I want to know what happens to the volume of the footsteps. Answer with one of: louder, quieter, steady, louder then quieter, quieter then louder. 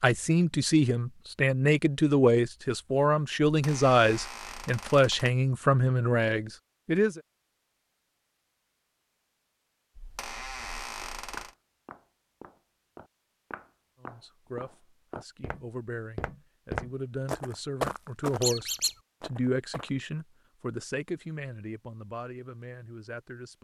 louder then quieter.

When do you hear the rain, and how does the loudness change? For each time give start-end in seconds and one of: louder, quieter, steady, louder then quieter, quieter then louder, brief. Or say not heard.
not heard.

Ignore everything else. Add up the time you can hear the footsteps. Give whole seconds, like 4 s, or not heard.
9 s.